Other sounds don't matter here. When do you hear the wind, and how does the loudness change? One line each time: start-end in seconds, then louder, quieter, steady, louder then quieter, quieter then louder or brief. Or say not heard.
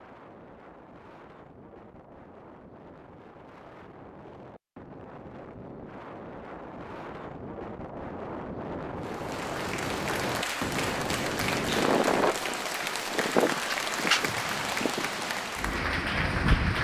0.0-16.7 louder.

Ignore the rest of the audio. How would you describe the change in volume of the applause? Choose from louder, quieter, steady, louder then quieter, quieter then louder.
steady.